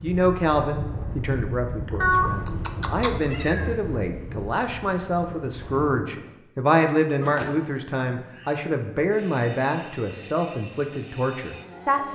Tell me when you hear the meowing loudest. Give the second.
2 s.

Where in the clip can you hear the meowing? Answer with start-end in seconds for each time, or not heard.
2.0-3.8, 7.2-8.7.